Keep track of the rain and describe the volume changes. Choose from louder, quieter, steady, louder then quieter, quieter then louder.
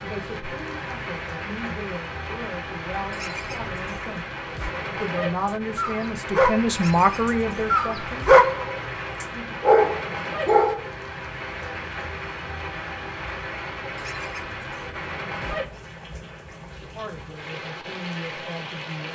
steady.